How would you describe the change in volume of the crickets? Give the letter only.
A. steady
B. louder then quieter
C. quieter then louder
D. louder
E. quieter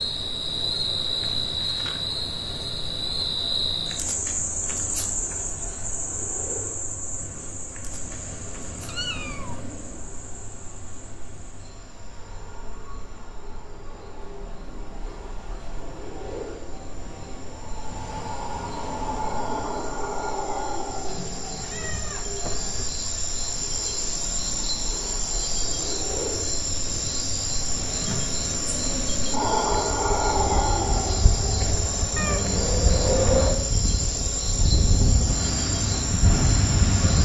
C.